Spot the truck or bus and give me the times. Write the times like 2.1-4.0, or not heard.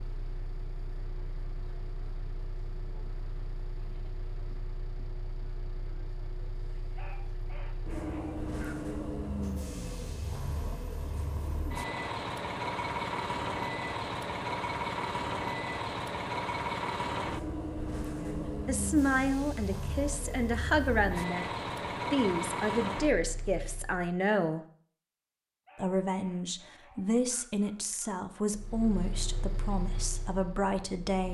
0.0-24.2, 28.5-31.3.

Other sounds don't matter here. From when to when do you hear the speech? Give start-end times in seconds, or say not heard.
18.1-21.4, 22.1-24.6, 25.8-31.3.